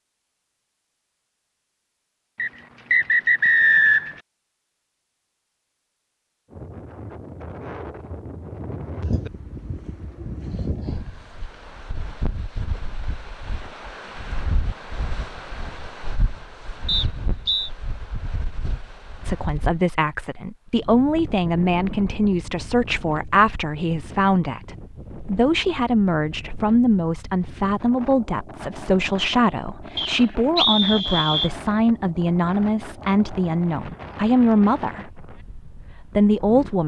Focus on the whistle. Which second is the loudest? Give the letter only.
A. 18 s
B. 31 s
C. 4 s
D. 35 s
C.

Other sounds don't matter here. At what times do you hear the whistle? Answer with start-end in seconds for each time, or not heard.
2.4-4.2, 16.9-17.7, 29.9-31.5.